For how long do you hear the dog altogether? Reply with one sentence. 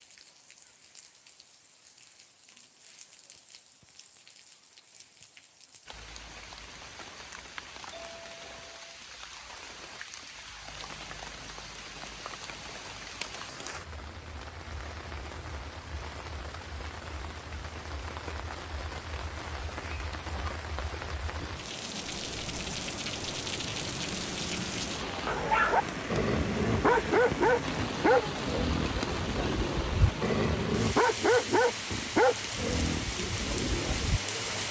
The dog can be heard for 9 seconds in total.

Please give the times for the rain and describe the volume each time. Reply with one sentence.
You can hear the rain from 0.0 to 34.6 s, getting louder.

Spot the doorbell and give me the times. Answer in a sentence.
The doorbell can be heard from 7.9 to 9.0 s.